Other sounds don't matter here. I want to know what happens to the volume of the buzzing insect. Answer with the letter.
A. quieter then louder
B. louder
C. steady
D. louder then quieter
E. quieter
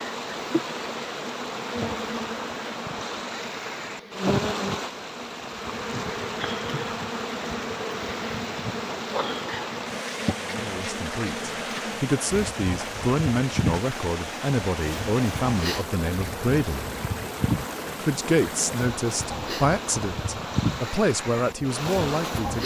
C.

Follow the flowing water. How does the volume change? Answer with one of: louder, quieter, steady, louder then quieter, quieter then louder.
steady.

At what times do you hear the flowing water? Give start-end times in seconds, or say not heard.
0.0-22.6.